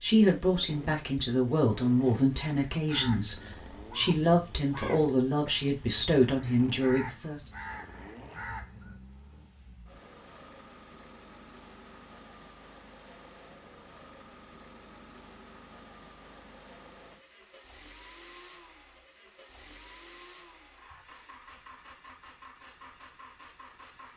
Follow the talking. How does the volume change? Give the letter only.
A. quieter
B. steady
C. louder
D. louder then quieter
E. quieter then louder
B.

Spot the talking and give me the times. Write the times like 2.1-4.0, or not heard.
0.0-7.4.